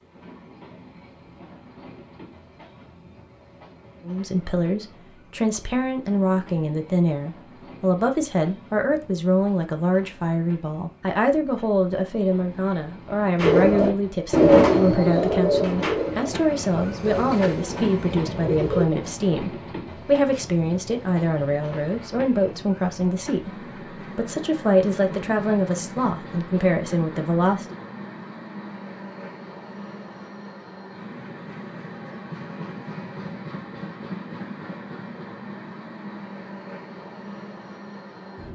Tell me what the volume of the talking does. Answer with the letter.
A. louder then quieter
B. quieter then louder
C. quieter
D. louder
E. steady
E.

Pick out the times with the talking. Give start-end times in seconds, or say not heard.
4.0-27.8.